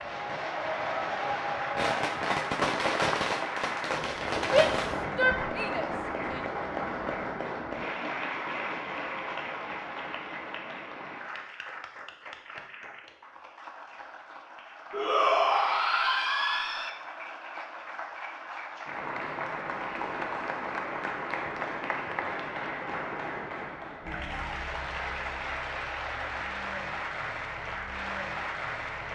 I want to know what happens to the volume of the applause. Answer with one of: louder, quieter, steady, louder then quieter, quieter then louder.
quieter then louder.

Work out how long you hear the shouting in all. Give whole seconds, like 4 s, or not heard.
4 s.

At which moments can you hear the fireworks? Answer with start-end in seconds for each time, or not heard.
0.0-5.0.